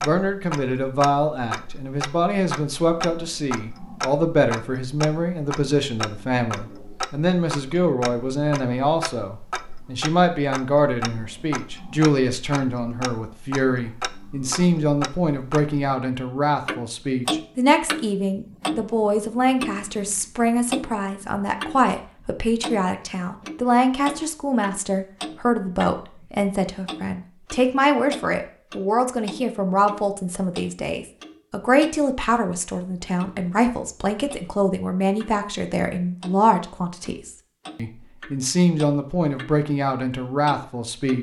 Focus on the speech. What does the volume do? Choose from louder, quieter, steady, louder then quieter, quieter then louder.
steady.